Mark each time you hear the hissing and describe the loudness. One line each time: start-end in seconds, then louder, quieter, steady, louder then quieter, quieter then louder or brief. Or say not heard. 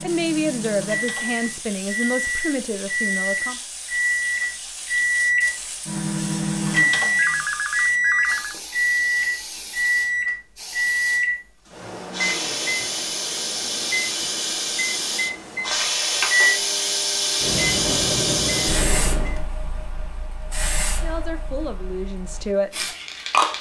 0.0-23.5 louder then quieter.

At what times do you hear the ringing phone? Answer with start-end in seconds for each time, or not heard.
7.2-8.6.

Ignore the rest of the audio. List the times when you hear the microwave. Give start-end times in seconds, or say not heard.
0.0-19.5.